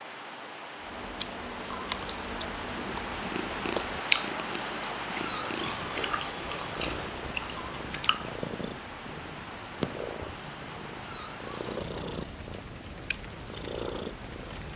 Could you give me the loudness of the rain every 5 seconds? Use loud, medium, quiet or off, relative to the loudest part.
loud, loud, medium.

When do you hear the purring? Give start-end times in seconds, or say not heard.
2.8-14.7.